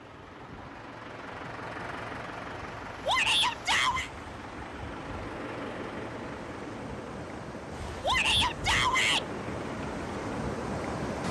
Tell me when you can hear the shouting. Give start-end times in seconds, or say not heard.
3.0-4.1, 8.0-9.2.